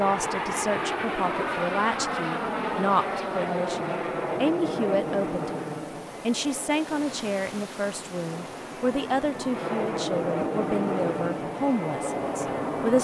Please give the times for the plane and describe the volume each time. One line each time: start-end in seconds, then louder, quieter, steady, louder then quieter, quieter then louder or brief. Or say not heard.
0.0-13.0 quieter then louder.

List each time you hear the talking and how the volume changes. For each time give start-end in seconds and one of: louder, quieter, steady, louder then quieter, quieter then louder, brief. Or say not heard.
0.0-13.0 steady.